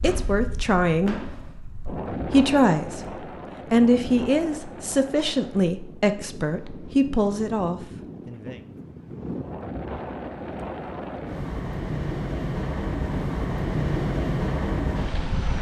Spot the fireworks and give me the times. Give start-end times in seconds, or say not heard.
0.0-1.6.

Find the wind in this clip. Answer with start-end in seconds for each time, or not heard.
0.0-15.5.